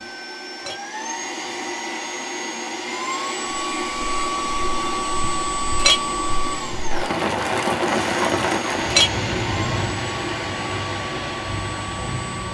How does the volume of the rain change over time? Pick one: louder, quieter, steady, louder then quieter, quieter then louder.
louder then quieter.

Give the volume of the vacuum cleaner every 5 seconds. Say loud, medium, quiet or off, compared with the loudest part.
loud, loud, medium.